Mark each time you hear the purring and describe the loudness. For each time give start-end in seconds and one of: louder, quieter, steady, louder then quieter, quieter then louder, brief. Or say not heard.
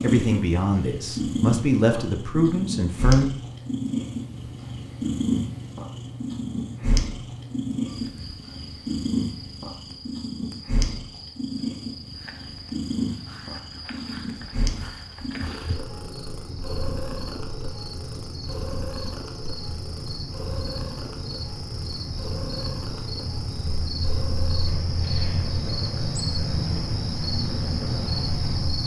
0.0-28.8 quieter.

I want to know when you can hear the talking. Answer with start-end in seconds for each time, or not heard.
0.0-3.2.